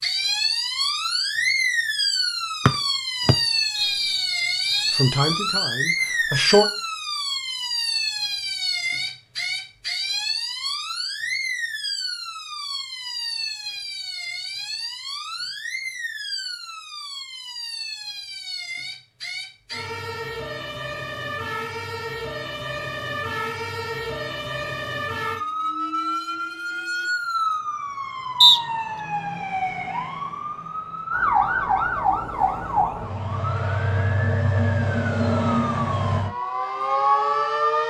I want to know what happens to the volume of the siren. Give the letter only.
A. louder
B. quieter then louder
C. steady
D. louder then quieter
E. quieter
B.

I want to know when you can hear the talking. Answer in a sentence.
You can hear the talking from 4.9 to 6.7 s.